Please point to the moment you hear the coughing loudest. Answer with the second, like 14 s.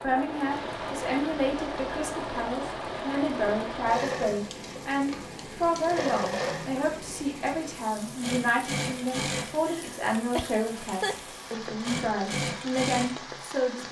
11 s.